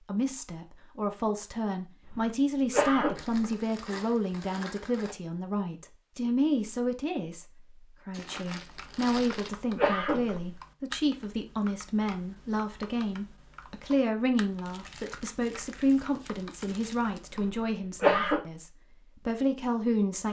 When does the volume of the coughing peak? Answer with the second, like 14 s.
18 s.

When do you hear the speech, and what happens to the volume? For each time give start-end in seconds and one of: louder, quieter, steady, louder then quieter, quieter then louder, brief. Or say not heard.
0.1-20.2 steady.